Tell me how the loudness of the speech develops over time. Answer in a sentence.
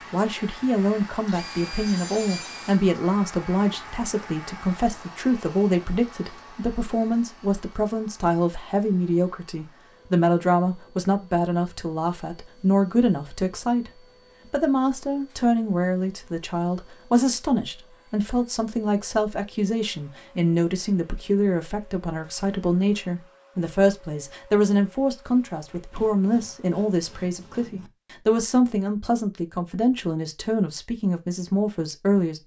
The volume of the speech stays about the same.